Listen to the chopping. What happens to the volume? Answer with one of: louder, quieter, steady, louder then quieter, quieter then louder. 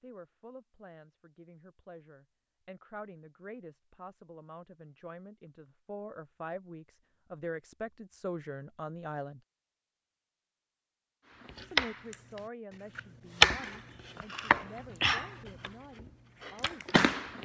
louder then quieter.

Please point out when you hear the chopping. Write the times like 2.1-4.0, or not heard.
11.4-17.3.